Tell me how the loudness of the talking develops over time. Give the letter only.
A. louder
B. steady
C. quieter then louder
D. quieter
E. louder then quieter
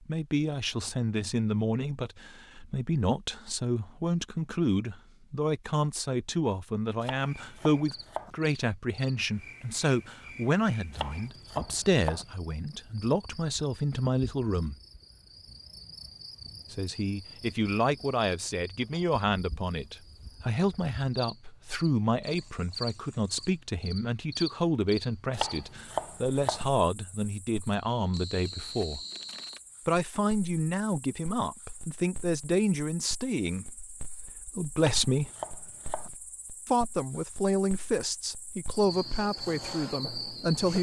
B.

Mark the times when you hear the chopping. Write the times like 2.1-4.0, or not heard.
7.0-8.3, 10.9-12.2, 25.3-26.6, 34.8-36.1.